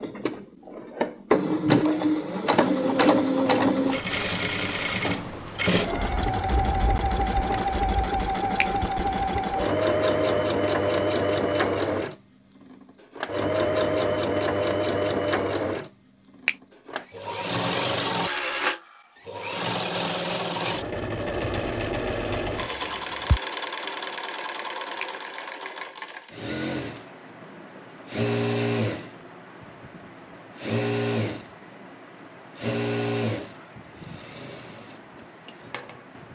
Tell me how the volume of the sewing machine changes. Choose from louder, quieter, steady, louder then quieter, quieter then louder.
quieter.